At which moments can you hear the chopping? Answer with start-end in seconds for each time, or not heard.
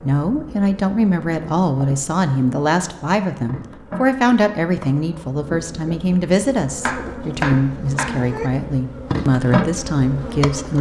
6.8-8.5.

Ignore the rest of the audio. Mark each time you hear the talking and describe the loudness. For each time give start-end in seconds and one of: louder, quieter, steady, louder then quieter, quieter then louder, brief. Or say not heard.
0.0-10.7 steady.